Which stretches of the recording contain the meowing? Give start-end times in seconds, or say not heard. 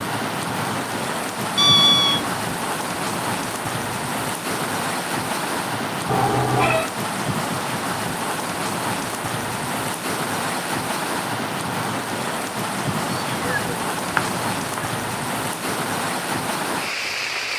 1.6-2.3, 6.0-6.9, 13.3-14.8.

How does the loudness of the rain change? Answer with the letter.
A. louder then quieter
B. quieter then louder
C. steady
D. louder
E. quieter
C.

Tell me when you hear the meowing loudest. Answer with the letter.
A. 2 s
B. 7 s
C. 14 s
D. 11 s
A.